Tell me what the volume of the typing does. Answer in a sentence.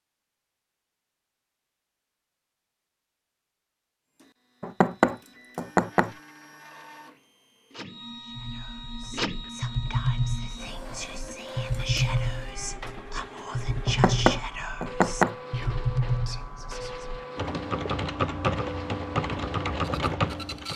The volume of the typing stays about the same.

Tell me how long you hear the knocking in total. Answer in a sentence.
The knocking can be heard for 3 seconds in total.